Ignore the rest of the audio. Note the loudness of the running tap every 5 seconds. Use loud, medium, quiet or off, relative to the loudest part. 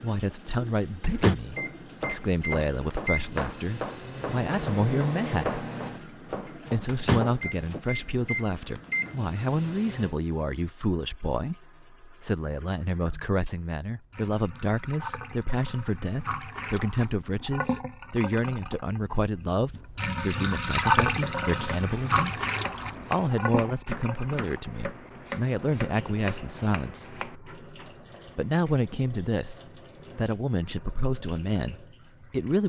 quiet, quiet, quiet, medium, loud, quiet, quiet.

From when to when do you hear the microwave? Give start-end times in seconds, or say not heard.
1.0-10.2.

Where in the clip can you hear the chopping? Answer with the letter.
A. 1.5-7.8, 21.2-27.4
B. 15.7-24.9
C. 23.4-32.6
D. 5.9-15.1
A.